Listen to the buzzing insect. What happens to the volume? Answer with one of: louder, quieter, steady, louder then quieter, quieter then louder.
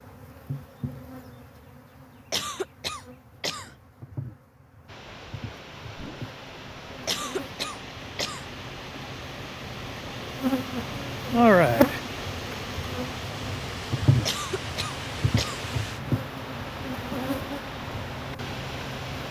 louder then quieter.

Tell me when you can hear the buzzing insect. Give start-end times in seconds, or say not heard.
0.0-19.2.